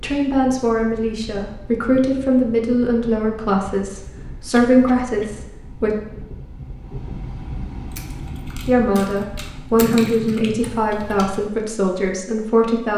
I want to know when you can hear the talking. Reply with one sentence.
The talking can be heard from 0.0 to 5.9 s and from 8.7 to 12.9 s.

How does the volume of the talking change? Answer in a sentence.
The loudness of the talking stays about the same.